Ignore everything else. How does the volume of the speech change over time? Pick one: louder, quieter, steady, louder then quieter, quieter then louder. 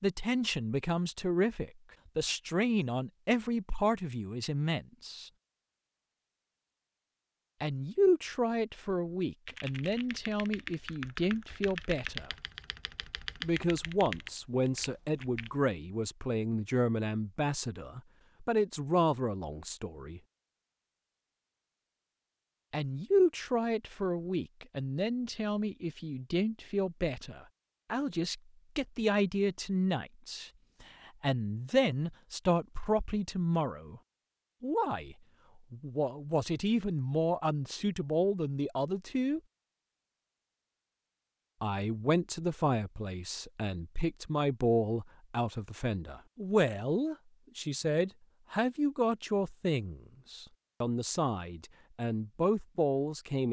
steady.